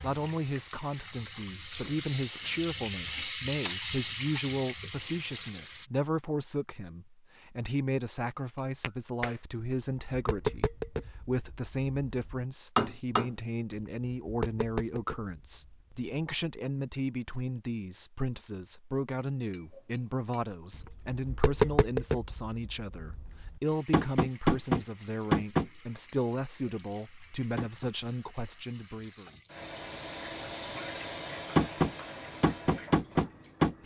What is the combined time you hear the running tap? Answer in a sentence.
You can hear the running tap for 16 seconds altogether.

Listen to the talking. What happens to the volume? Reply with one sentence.
The loudness of the talking stays about the same.